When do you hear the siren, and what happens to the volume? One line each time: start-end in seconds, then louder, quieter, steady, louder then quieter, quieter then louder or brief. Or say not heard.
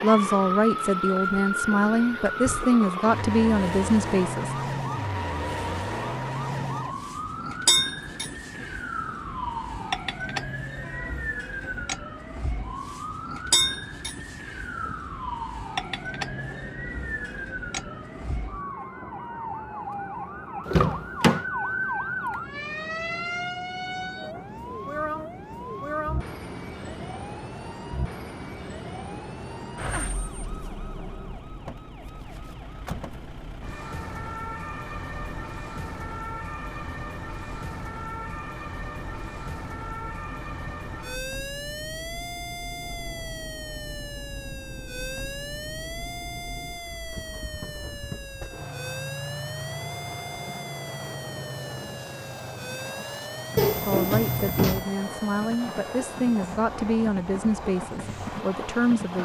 0.0-59.2 quieter.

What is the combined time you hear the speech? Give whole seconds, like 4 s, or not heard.
10 s.